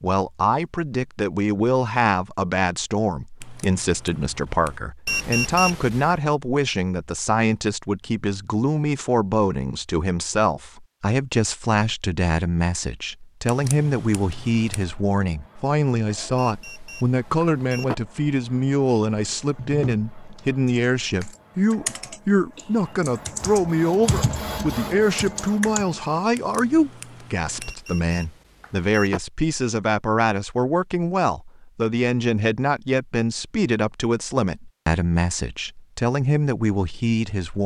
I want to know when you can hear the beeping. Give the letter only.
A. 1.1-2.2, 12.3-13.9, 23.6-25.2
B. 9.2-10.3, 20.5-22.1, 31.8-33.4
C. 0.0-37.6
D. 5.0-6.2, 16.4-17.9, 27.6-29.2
D.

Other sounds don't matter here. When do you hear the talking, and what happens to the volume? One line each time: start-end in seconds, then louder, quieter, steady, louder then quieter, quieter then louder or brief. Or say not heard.
0.0-37.6 steady.